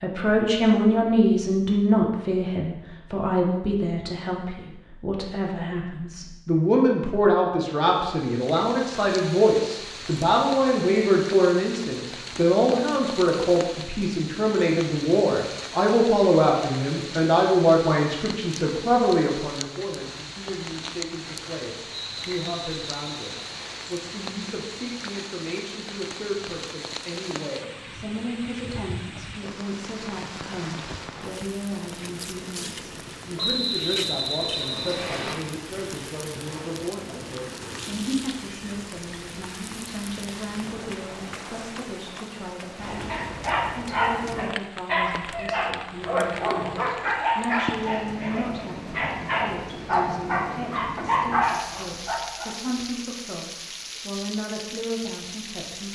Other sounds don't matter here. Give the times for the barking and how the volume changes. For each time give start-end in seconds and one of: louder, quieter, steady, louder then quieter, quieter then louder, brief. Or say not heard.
42.9-52.5 steady.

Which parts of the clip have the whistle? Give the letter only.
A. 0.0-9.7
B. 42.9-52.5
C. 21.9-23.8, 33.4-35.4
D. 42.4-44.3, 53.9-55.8
C.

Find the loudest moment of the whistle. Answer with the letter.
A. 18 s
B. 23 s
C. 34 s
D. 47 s
C.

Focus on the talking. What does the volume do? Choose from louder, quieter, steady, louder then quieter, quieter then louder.
quieter.